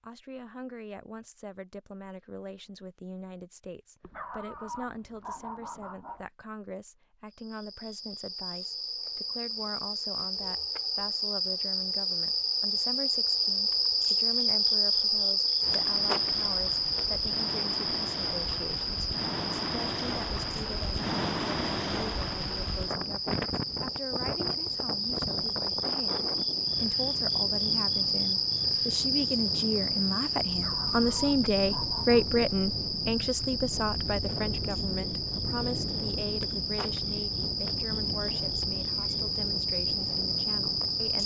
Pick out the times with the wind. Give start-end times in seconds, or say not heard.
15.6-41.2.